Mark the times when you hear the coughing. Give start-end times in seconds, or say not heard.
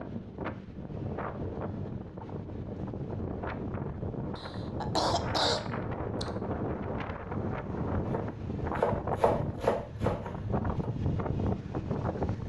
4.3-6.2.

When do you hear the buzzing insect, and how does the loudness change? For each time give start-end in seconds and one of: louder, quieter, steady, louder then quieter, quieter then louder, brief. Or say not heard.
not heard.